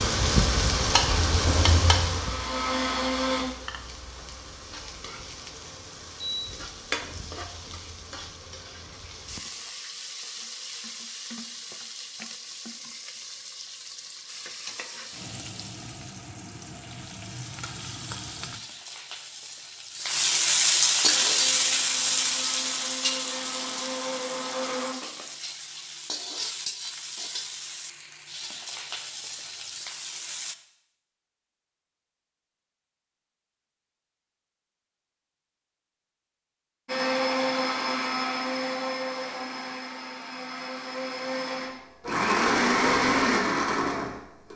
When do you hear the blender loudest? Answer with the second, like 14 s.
43 s.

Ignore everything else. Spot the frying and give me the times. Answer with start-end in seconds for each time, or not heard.
0.0-30.6.